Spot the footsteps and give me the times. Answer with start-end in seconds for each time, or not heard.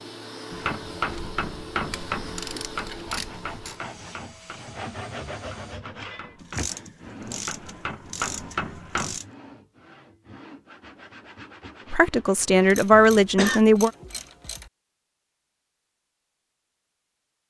not heard.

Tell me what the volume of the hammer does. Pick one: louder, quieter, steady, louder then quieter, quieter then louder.
quieter then louder.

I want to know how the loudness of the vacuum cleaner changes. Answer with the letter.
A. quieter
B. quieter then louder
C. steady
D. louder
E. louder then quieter
A.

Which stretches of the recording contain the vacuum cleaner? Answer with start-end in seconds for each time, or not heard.
0.0-5.8.